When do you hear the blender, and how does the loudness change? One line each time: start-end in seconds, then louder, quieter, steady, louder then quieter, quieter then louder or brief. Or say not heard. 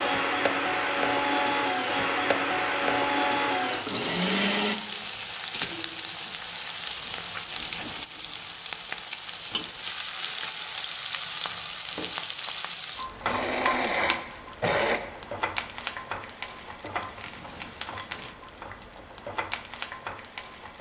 0.0-4.8 steady
13.2-15.0 brief.